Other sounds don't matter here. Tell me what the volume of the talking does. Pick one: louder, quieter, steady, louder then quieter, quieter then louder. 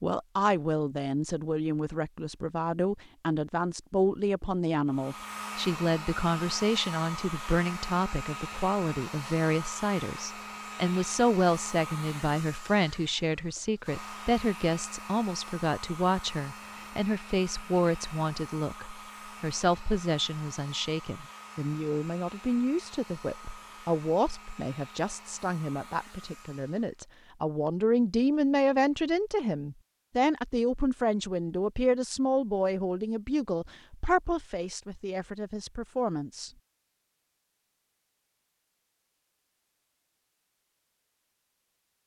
steady.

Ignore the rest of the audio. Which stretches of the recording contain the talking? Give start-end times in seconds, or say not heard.
0.0-36.5.